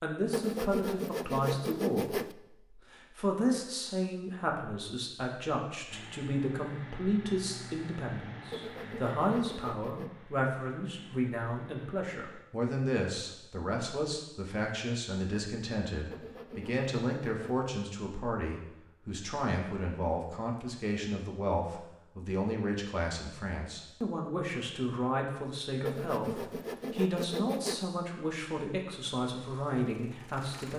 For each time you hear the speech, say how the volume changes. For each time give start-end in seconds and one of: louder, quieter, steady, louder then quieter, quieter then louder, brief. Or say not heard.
0.0-30.7 steady.